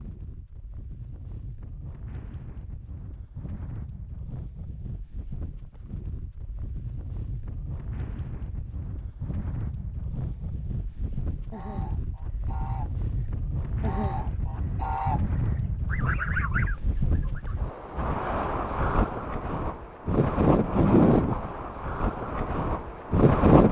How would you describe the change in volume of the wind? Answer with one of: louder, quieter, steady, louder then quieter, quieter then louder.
louder.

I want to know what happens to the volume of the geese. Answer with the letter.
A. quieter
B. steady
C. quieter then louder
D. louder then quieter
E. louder
E.